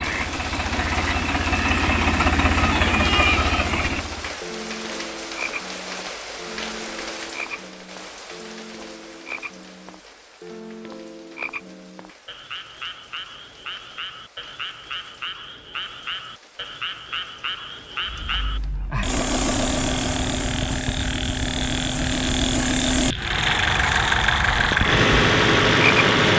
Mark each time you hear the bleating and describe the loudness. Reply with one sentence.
You can't hear the bleating here.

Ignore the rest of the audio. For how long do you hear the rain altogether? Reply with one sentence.
The rain can be heard for 19 seconds in total.